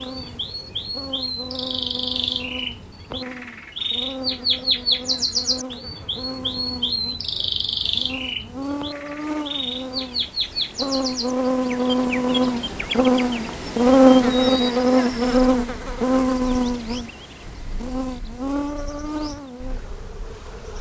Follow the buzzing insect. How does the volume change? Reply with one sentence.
The volume of the buzzing insect goes up, then down.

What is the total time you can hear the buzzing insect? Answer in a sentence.
The buzzing insect can be heard for 21 seconds in total.